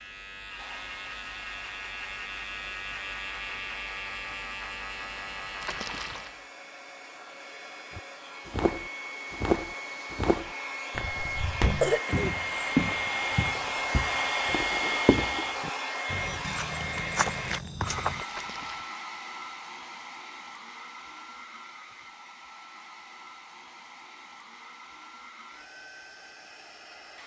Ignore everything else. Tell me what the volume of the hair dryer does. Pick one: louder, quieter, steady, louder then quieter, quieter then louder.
louder then quieter.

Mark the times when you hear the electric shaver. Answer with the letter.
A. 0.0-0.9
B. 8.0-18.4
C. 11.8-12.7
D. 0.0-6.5
D.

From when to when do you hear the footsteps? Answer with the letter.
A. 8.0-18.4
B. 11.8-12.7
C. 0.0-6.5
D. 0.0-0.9
A.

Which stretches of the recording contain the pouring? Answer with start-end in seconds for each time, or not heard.
5.6-6.3, 18.2-18.9.